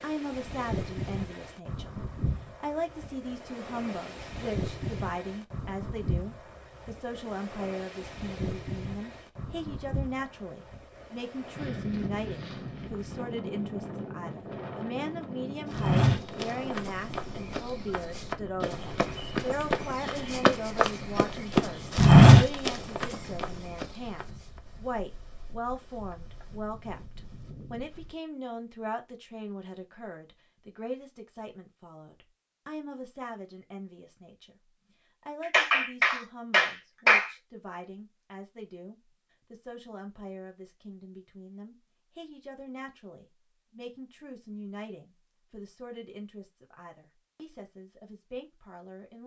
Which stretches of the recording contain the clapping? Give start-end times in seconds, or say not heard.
35.4-37.3.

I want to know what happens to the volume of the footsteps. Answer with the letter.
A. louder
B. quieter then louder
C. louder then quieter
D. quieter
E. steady
A.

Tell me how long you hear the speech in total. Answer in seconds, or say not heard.
48 s.